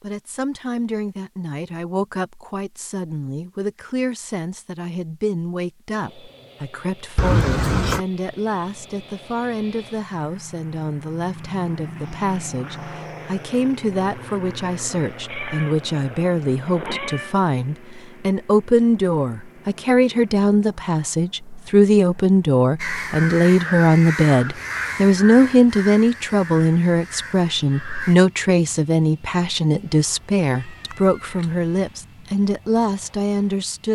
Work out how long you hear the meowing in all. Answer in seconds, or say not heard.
5 s.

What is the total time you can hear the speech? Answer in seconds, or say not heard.
34 s.